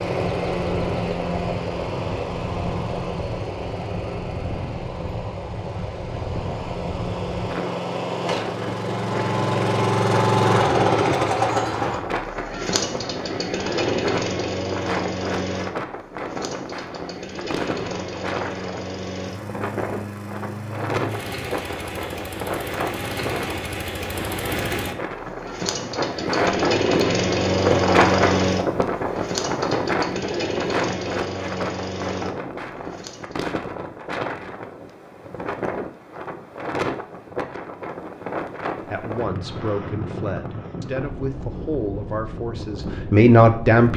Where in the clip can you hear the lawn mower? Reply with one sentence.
The lawn mower can be heard from 0.0 to 33.5 s.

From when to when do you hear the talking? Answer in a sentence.
You can hear the talking from 38.8 to 43.9 s.